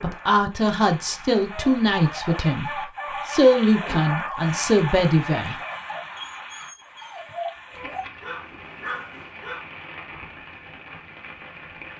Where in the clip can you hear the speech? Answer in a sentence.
The speech can be heard from 0.0 to 5.5 s.